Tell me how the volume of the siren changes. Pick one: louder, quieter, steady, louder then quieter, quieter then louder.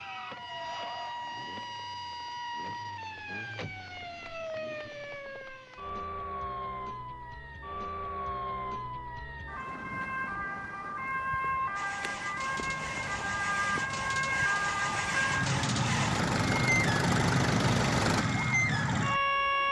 louder.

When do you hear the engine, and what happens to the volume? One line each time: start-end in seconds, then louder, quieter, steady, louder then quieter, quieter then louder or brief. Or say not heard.
11.8-18.2 louder.